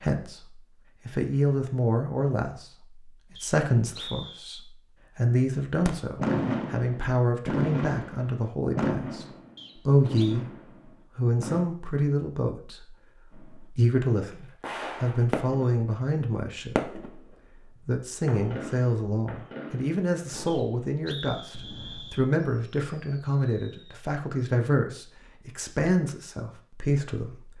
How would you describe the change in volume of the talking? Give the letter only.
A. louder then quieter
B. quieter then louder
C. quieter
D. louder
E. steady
E.